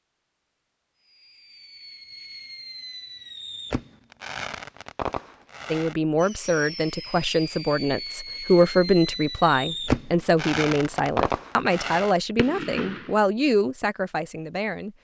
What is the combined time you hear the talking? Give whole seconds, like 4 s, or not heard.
9 s.